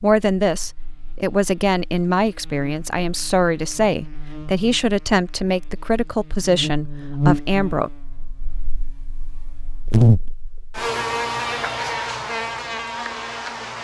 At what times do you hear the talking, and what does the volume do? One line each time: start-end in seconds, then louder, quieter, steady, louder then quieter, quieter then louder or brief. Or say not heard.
0.0-7.9 steady.